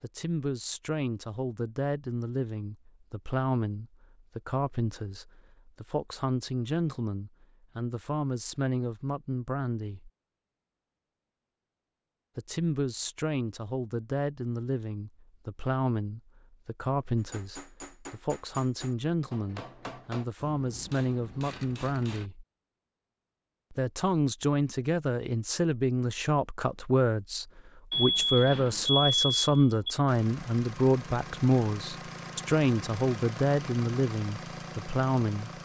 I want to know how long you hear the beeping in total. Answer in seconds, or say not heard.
2 s.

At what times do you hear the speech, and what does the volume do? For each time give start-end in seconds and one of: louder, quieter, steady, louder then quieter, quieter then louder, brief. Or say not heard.
0.0-10.1 steady
12.3-22.4 steady
23.7-35.5 steady.